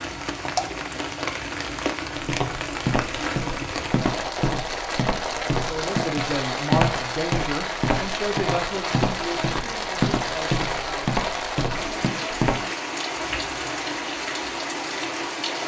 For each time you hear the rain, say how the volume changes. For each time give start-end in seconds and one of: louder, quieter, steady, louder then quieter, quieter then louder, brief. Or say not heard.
0.0-15.6 steady.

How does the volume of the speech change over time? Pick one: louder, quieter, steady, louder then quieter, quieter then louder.
quieter.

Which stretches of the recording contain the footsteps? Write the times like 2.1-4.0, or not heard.
2.1-12.6.